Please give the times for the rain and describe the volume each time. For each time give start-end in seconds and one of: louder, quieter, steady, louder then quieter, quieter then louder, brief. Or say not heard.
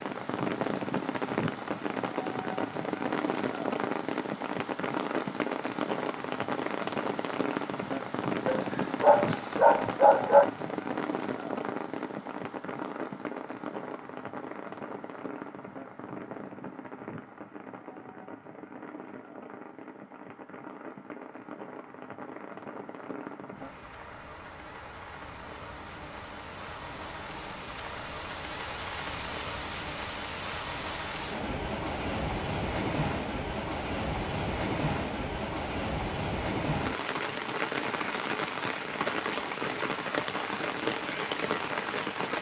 0.0-42.3 quieter then louder.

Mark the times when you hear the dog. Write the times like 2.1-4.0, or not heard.
8.4-10.4.